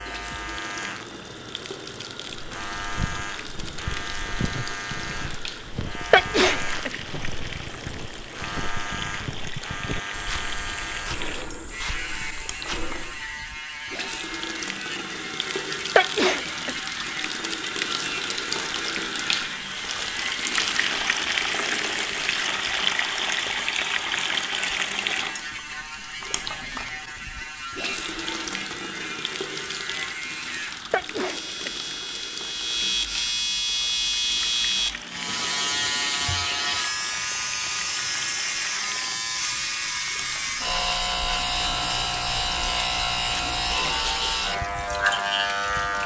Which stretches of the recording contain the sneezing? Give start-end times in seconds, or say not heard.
6.1-7.0, 15.9-16.8, 30.9-31.8.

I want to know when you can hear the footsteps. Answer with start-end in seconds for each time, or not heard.
2.3-13.3.